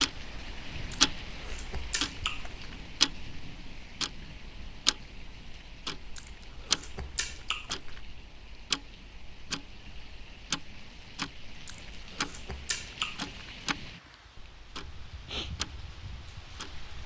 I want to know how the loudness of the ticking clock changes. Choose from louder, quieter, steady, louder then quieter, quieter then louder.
quieter.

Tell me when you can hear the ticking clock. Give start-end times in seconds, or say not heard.
0.0-17.0.